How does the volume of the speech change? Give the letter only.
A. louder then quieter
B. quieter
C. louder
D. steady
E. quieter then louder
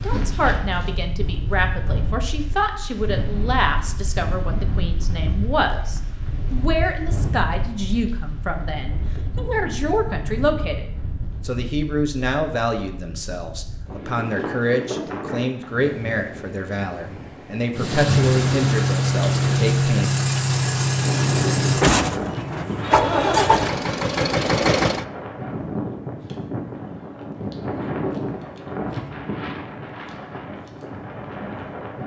D.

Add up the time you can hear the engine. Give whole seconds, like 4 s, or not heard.
7 s.